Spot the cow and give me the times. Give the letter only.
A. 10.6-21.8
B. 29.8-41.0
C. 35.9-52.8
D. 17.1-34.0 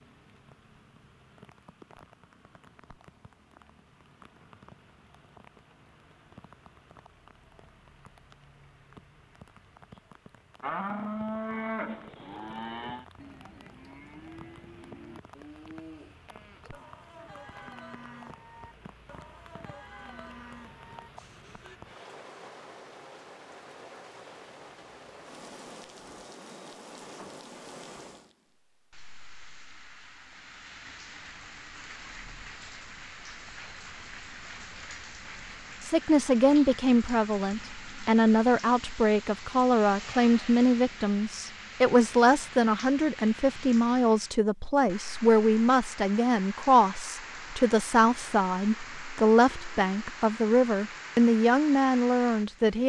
A.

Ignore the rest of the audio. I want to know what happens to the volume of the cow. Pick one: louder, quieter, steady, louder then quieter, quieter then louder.
quieter.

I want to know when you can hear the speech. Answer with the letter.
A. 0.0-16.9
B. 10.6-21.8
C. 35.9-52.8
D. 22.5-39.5
C.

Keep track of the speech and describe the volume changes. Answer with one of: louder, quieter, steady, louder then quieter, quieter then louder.
steady.